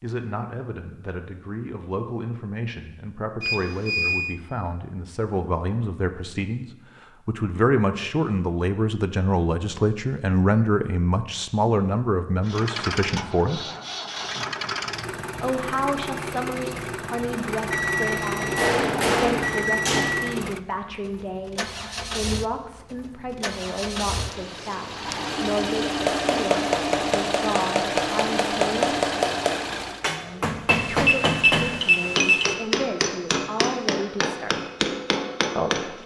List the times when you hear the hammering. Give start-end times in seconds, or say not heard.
18.4-20.2, 25.9-36.0.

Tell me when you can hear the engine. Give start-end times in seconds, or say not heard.
12.4-30.1.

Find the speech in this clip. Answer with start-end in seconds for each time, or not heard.
0.0-13.6, 15.4-29.0, 30.9-34.5, 35.5-36.0.